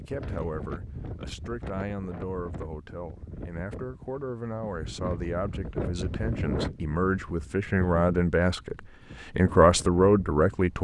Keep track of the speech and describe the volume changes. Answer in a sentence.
The loudness of the speech goes up.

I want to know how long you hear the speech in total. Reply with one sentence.
The speech can be heard for 11 seconds in total.